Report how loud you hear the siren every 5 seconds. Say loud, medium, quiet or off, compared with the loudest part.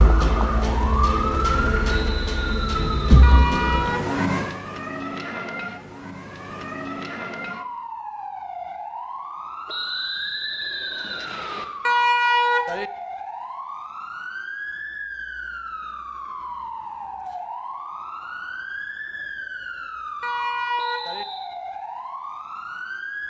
loud, medium, medium, medium, medium.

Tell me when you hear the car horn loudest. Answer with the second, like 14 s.
12 s.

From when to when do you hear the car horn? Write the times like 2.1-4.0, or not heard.
3.2-4.2, 11.8-12.9, 20.2-21.2.